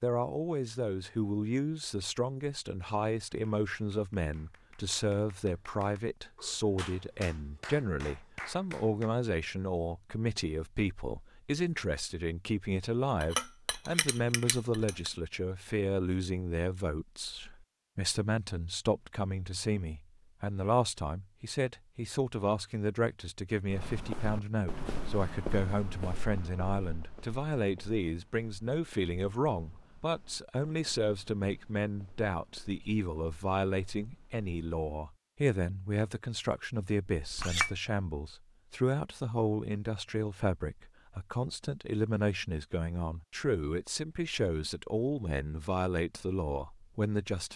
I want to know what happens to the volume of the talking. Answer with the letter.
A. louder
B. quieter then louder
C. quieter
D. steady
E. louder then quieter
D.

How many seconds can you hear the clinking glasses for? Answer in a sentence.
You can hear the clinking glasses for 3 seconds altogether.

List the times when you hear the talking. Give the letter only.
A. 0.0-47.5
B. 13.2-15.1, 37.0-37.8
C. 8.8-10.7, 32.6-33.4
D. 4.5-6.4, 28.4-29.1
A.